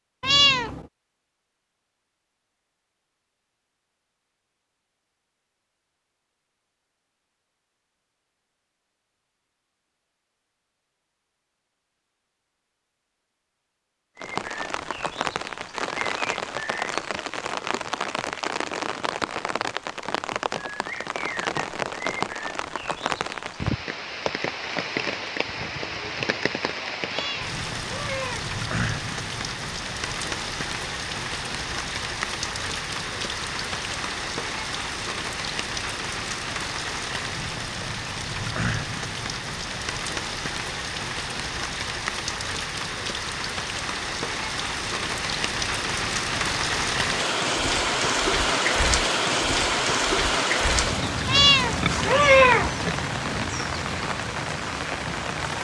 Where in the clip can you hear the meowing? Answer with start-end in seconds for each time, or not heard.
0.2-0.8, 27.1-28.5, 51.2-52.7.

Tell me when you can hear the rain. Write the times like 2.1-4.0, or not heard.
14.2-55.5.